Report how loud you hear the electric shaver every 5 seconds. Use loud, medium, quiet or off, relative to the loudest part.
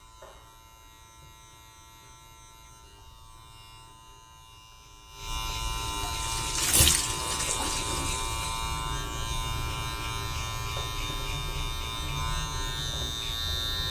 quiet, loud, loud.